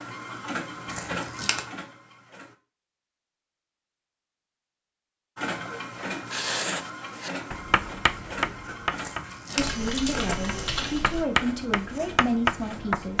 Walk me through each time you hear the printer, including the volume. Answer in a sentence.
You can hear the printer briefly from 0.0 to 2.5 s; and from 5.3 to 13.1 s, getting quieter.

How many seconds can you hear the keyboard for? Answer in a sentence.
The keyboard can be heard for 2 seconds in total.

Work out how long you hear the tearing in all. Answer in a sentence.
The tearing can be heard for 3 seconds in total.